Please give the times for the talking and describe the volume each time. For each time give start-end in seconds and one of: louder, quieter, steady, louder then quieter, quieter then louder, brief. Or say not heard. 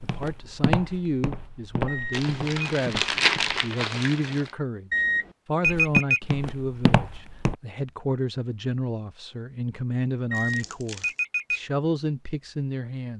0.0-13.1 steady.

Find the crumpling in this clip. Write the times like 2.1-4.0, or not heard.
2.1-4.5, 10.3-11.2.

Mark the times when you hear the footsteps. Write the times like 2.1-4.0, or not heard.
0.0-3.7, 5.7-7.5.